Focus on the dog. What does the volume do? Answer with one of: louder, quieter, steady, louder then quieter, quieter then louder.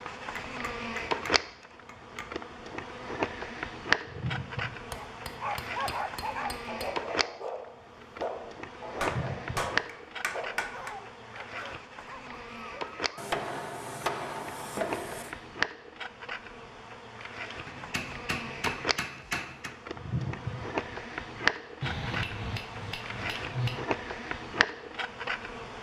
quieter.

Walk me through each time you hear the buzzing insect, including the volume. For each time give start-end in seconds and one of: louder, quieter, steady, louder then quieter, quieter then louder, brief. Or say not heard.
0.0-25.7 quieter then louder.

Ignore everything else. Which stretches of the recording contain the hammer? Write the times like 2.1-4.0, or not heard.
0.3-2.3, 4.9-6.9, 9.0-10.9, 13.2-15.3, 17.6-19.8, 21.8-23.9.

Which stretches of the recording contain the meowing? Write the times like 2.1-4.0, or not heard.
4.0-4.8, 8.9-9.8, 19.9-21.5.